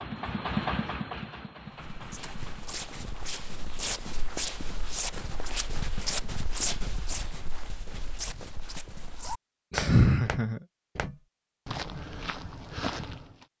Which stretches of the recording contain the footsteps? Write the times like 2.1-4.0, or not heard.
1.8-13.4.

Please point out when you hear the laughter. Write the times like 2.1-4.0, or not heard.
9.7-10.6.